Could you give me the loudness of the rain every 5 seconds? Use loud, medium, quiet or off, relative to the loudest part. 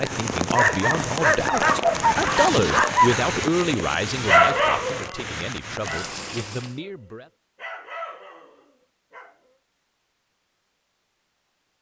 loud, medium, off.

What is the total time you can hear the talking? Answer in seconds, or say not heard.
7 s.